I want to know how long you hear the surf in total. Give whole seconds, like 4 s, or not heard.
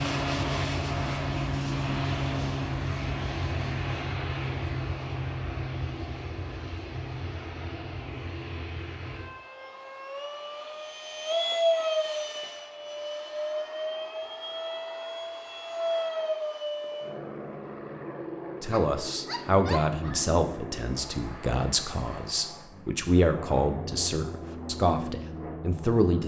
not heard.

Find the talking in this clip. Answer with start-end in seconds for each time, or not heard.
18.6-26.2.